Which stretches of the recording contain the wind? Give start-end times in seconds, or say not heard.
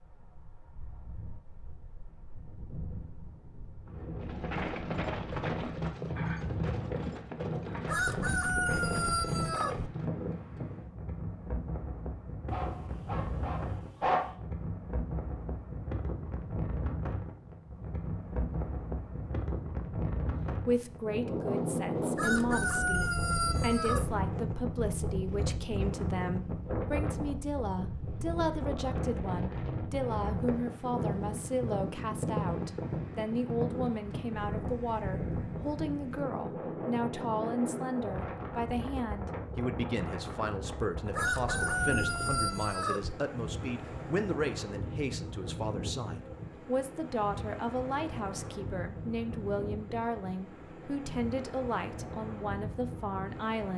0.0-53.7.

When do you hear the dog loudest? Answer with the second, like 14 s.
14 s.